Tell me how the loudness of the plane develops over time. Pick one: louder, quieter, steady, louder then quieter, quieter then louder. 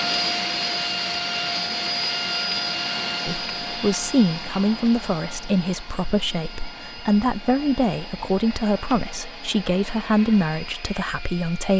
quieter.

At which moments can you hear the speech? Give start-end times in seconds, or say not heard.
3.2-11.7.